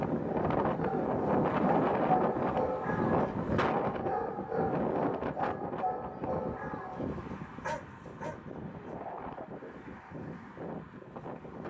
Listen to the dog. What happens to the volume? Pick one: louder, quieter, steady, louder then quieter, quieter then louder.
quieter.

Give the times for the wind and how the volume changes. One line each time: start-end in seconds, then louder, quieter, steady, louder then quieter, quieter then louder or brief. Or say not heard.
0.0-11.6 quieter.